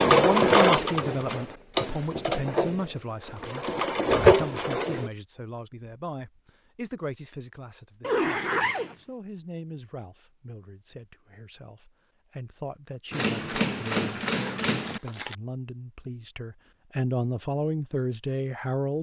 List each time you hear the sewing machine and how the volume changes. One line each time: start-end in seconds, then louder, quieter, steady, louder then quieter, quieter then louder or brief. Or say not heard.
0.0-5.1 quieter then louder.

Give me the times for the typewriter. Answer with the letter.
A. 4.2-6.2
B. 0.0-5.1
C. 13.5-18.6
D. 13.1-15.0
D.